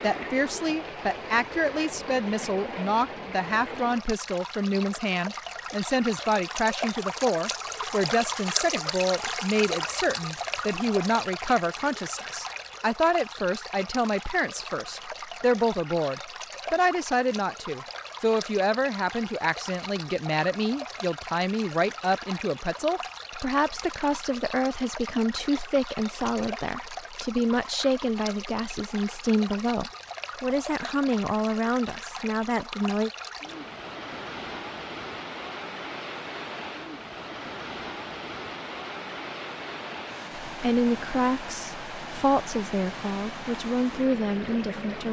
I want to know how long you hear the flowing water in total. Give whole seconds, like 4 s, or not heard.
45 s.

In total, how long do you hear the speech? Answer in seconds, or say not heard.
38 s.